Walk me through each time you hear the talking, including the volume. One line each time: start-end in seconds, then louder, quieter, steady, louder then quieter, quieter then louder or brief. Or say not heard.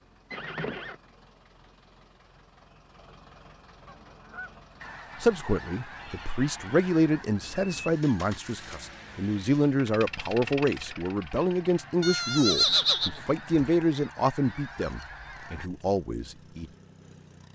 5.2-16.7 steady.